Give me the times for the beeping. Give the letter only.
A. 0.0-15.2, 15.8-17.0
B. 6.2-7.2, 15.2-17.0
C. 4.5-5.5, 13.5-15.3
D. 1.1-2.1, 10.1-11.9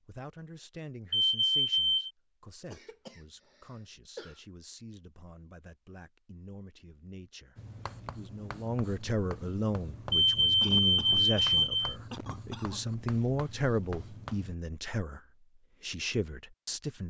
D.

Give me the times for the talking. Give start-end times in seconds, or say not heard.
0.0-15.2, 15.8-17.0.